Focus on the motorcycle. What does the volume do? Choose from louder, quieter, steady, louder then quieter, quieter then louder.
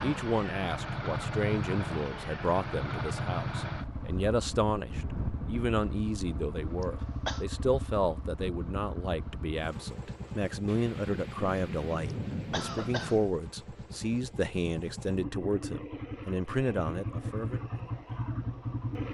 quieter then louder.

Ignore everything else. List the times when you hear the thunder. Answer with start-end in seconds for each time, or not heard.
10.7-13.3.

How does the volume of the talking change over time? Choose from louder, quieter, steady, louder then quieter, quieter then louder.
steady.